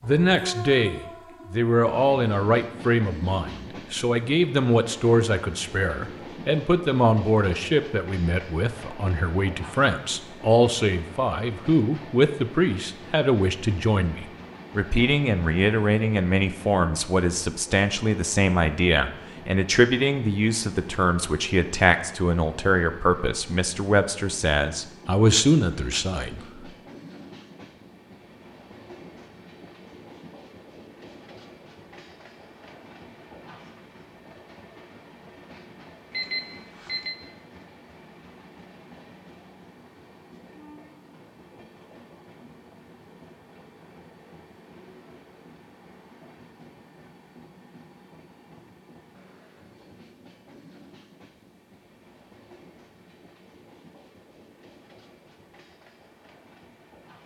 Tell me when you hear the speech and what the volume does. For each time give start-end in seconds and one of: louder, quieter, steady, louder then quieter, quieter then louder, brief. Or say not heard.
0.0-26.4 steady.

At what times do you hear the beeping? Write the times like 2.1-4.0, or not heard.
36.1-37.1.